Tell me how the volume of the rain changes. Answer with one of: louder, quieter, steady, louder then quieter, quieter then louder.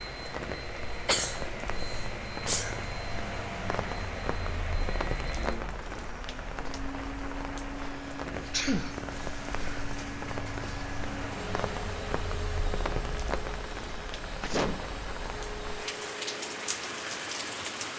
steady.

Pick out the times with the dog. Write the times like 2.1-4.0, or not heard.
not heard.